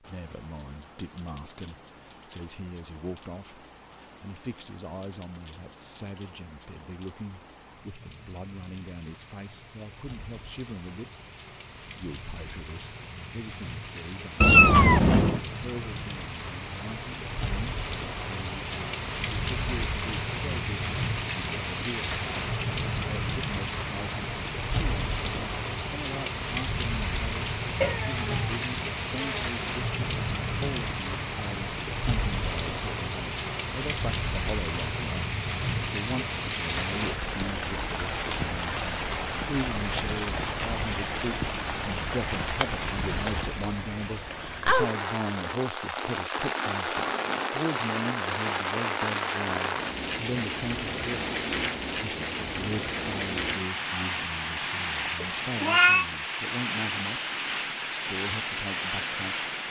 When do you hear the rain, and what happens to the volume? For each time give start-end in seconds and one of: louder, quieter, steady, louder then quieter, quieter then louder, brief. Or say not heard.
0.0-59.6 louder.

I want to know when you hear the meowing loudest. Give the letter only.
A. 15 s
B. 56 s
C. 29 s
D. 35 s
A.